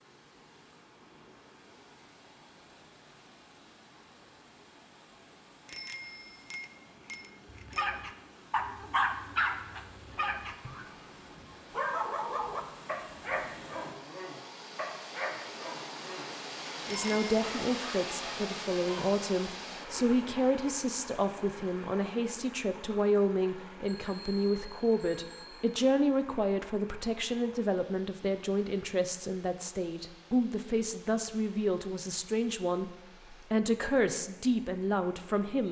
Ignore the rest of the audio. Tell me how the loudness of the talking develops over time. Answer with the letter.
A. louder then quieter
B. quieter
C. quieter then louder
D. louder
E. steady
E.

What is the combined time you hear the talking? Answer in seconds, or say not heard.
19 s.